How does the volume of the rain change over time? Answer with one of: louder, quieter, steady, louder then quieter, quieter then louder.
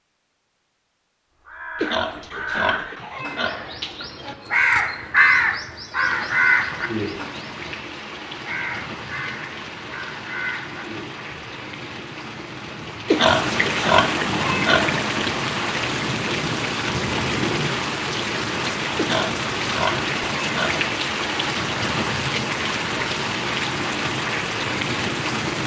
louder.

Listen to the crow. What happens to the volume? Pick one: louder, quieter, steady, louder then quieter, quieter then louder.
louder then quieter.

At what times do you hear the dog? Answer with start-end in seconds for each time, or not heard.
not heard.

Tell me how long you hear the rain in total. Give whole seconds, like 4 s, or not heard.
20 s.